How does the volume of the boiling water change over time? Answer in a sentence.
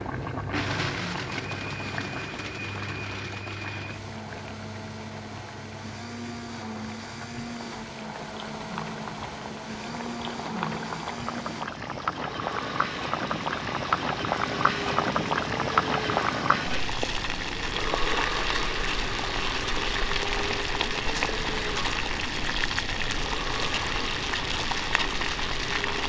The loudness of the boiling water goes up.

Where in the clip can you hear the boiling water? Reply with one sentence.
You can hear the boiling water from 0.0 to 26.0 s.